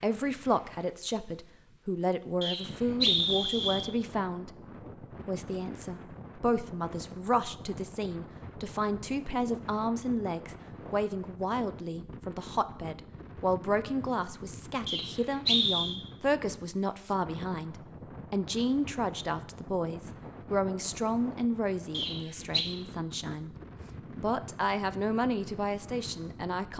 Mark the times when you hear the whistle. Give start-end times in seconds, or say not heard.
2.4-3.9, 14.8-15.9, 21.9-22.6.